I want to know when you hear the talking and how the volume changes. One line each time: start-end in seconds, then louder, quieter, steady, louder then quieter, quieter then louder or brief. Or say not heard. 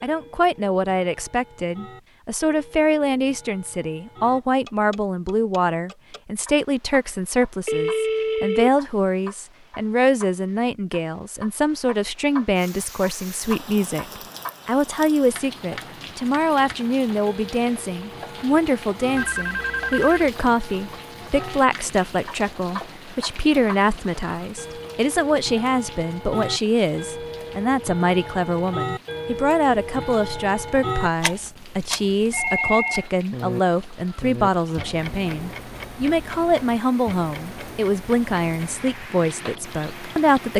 0.0-40.5 steady.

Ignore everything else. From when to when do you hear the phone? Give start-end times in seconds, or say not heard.
7.7-8.7, 19.1-20.3, 32.3-33.5.